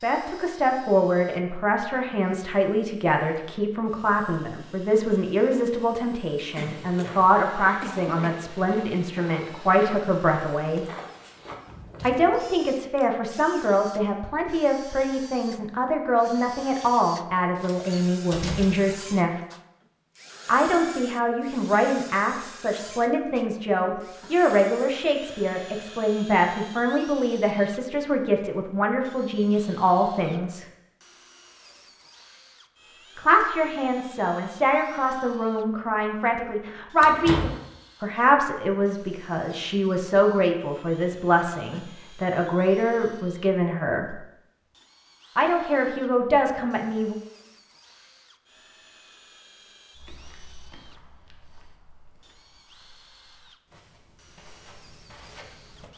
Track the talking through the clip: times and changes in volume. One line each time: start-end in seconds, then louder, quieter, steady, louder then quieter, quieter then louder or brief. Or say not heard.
0.0-10.8 steady
12.0-19.4 steady
20.4-30.6 steady
33.1-44.2 steady
45.4-47.1 brief.